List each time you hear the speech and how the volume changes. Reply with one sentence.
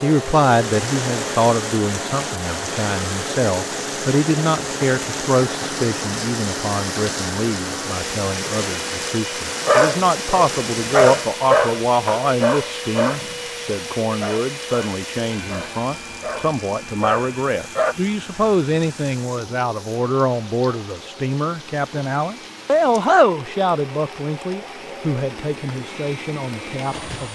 The speech can be heard from 0.0 to 27.3 s, at a steady volume.